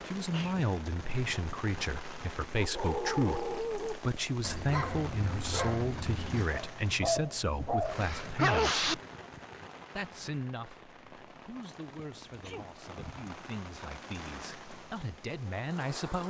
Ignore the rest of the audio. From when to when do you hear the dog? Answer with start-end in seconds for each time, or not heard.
2.5-8.1.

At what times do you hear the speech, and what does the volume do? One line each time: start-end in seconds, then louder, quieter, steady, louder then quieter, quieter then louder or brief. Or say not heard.
0.1-8.8 steady
9.9-16.2 quieter then louder.